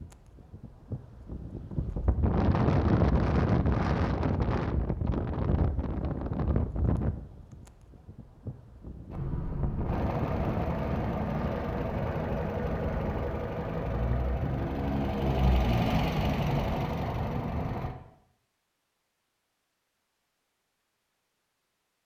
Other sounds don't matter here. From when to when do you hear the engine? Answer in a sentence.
You can hear the engine from 9.1 to 17.9 s.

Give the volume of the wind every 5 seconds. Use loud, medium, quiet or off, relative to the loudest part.
loud, medium, medium, off, off.